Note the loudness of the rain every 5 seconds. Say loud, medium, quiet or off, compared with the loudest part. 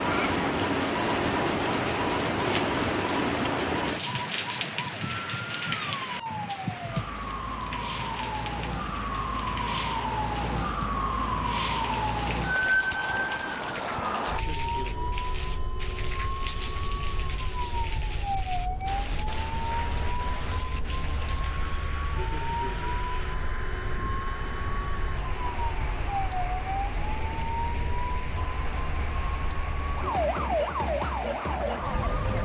loud, medium, quiet, quiet, quiet, quiet, quiet.